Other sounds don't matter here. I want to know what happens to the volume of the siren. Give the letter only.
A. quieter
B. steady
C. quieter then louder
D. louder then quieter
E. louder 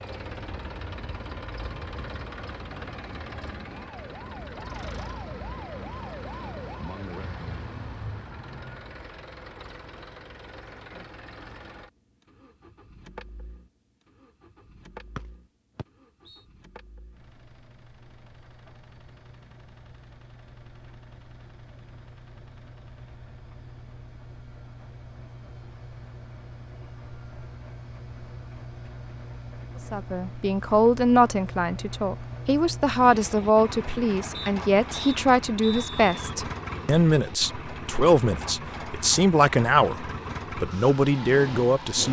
E.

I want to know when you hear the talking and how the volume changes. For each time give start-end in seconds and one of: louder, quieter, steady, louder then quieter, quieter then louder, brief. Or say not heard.
29.9-42.0 steady.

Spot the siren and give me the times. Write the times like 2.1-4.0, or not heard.
0.0-9.0.